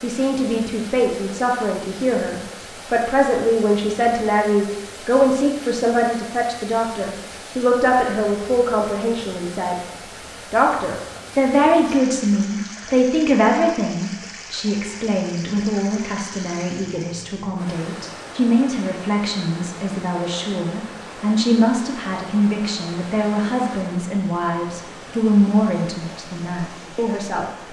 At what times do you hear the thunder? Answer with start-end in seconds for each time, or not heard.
not heard.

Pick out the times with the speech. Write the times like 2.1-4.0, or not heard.
0.0-9.8, 10.5-27.4.